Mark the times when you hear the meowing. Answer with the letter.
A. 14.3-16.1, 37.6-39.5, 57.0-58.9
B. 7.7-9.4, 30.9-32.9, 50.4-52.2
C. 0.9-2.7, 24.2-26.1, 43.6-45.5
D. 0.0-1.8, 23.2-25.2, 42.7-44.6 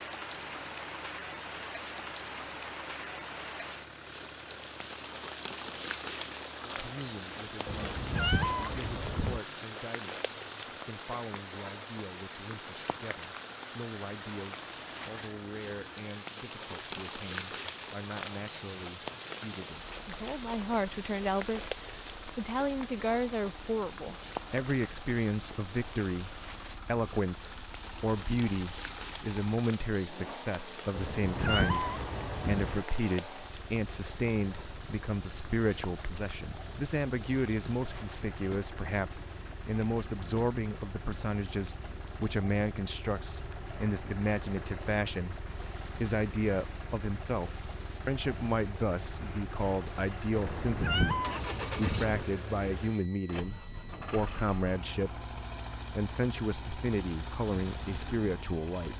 B.